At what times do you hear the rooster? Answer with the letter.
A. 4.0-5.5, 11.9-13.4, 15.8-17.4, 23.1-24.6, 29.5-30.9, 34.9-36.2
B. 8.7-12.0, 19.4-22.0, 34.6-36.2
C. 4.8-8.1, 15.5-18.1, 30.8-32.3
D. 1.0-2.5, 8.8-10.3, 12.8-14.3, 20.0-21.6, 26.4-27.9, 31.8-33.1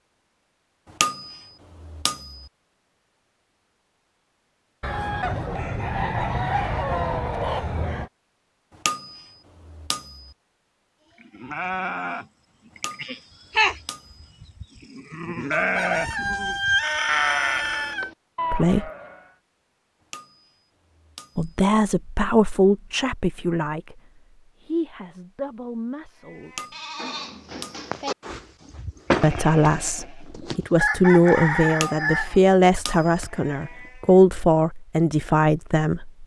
C.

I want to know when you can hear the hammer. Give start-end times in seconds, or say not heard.
1.0-2.5, 8.8-10.3, 12.8-14.3, 20.0-21.6, 26.4-27.9, 31.8-33.1.